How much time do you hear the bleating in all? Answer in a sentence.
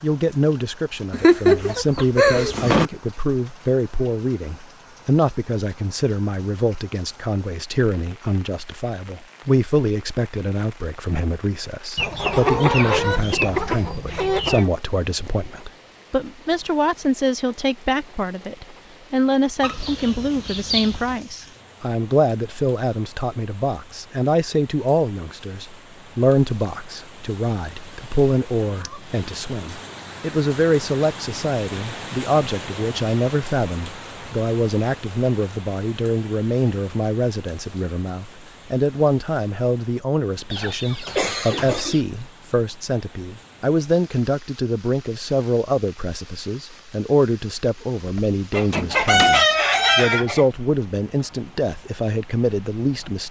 The bleating can't be heard in this clip.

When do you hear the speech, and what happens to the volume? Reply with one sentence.
The speech can be heard from 0.0 to 53.2 s, at a steady volume.